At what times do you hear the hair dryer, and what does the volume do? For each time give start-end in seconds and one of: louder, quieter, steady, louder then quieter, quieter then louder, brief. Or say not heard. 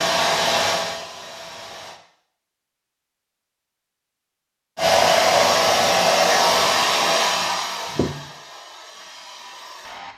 0.0-2.0 brief
4.8-10.1 quieter.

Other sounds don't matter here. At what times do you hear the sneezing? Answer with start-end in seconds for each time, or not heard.
7.9-8.3.